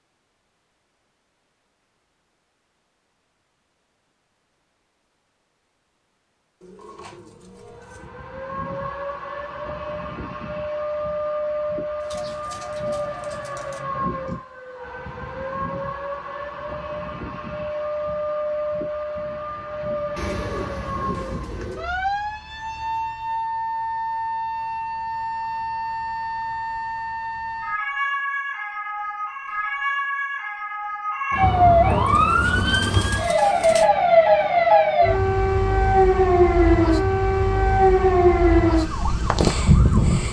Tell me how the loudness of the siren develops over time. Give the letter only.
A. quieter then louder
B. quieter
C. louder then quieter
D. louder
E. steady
D.